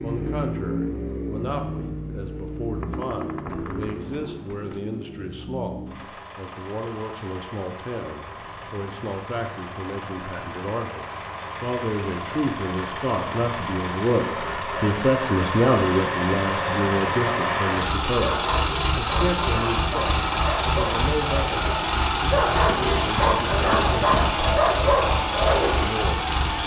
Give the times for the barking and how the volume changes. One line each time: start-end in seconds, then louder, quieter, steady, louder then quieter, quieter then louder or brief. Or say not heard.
18.2-25.8 louder.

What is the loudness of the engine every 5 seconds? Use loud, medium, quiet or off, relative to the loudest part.
medium, quiet, medium, loud, loud, loud.